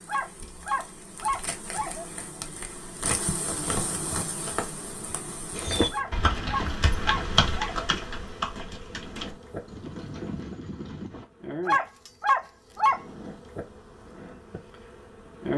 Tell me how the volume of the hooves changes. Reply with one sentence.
The loudness of the hooves goes down.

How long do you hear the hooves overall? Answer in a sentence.
You can hear the hooves for 6 seconds altogether.